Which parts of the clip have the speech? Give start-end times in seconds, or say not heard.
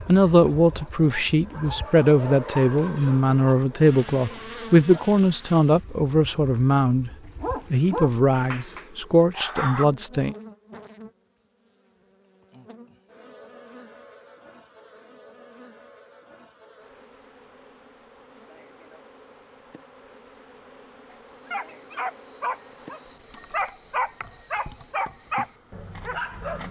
0.1-7.1, 7.7-10.3.